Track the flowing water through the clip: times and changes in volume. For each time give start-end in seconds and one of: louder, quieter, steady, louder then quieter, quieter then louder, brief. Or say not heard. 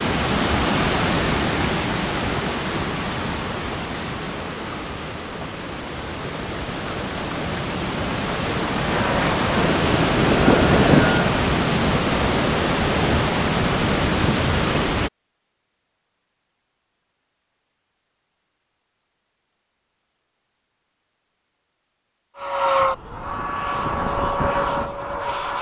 0.0-15.1 quieter then louder.